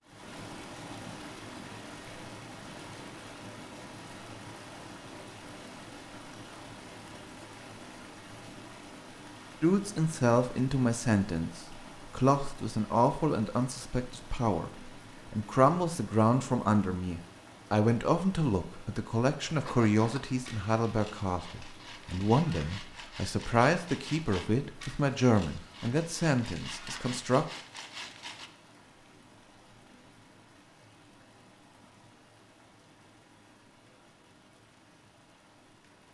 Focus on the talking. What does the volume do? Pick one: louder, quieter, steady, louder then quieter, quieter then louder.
steady.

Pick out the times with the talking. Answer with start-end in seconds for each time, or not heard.
9.6-14.7, 15.3-27.4.